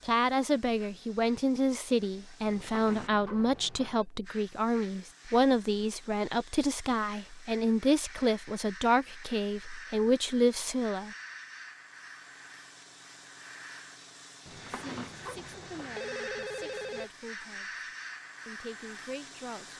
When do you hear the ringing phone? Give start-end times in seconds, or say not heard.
2.5-4.0, 14.4-17.1.